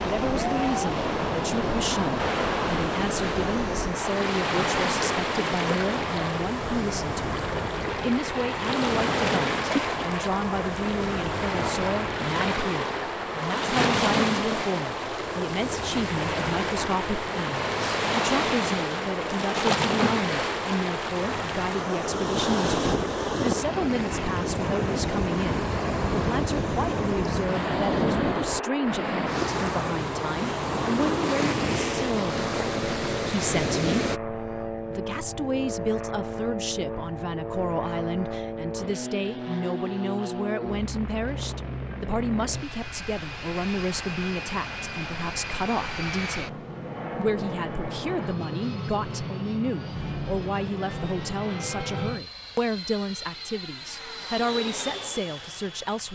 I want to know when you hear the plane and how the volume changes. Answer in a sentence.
The plane can be heard from 0.0 to 56.0 s, at a steady volume.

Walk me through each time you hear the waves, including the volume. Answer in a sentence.
The waves can be heard from 0.0 to 34.2 s, at a steady volume.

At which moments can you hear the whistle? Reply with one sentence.
You can't hear the whistle here.